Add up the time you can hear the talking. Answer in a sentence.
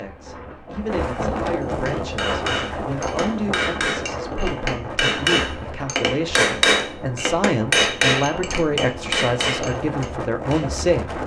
You can hear the talking for 11 seconds altogether.